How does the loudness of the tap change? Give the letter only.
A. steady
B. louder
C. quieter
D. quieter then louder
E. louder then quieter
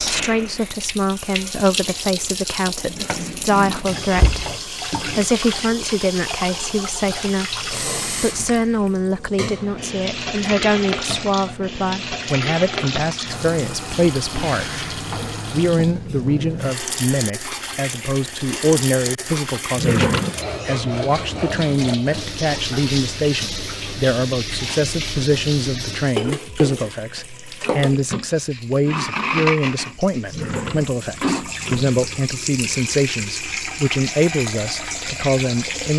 A.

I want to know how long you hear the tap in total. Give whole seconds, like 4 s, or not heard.
36 s.